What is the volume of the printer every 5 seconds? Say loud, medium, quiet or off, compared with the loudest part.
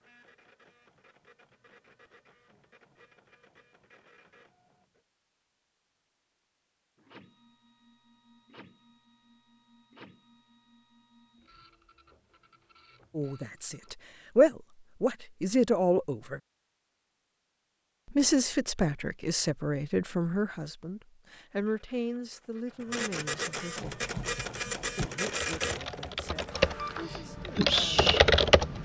quiet, quiet, quiet, off, loud, loud.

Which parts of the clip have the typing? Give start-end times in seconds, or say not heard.
23.9-28.8.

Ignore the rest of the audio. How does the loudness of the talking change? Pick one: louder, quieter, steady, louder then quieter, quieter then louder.
quieter.